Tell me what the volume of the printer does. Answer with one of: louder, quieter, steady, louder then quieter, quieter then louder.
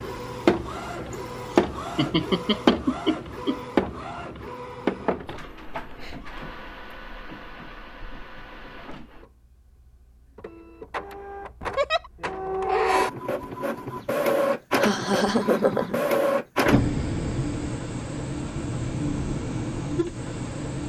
quieter then louder.